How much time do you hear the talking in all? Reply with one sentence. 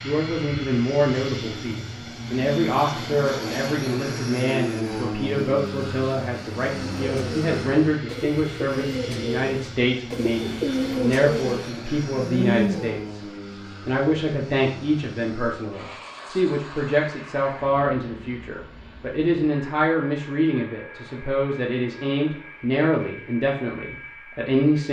The talking can be heard for 25 seconds in total.